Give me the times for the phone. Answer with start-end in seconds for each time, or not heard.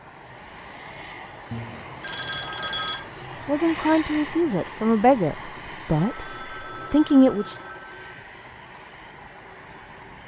1.5-3.0, 6.0-8.2.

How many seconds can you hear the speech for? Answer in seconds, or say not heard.
3 s.